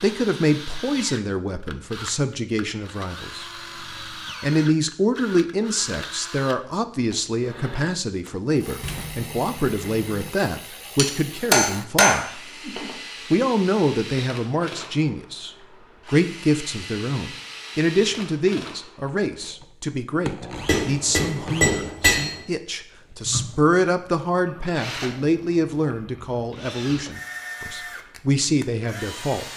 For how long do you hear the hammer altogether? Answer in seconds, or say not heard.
4 s.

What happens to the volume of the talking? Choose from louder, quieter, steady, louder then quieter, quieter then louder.
steady.